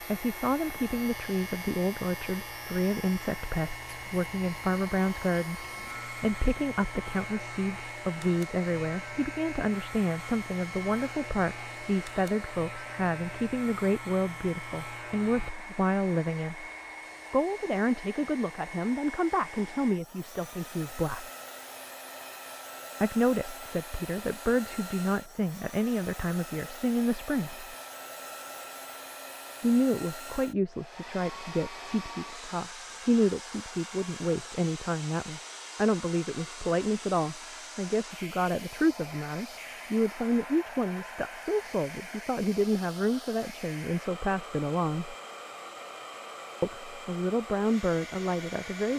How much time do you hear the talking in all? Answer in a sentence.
You can hear the talking for 43 seconds altogether.